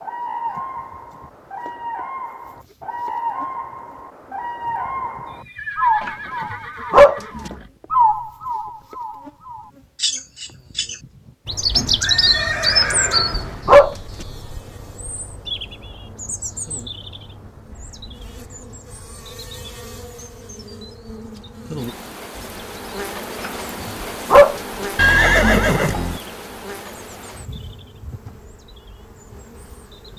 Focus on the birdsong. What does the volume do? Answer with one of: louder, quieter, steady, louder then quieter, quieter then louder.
louder then quieter.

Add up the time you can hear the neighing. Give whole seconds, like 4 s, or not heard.
6 s.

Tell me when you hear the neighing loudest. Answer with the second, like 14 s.
25 s.